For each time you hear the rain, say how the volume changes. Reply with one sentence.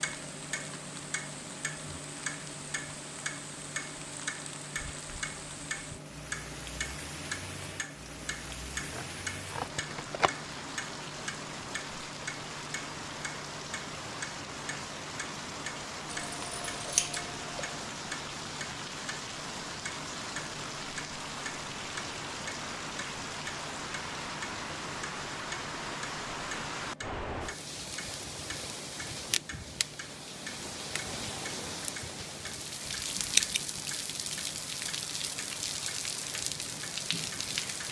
The rain can be heard from 0.0 to 37.8 s, getting louder.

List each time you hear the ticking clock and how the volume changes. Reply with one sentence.
You can hear the ticking clock from 0.0 to 37.8 s, getting quieter.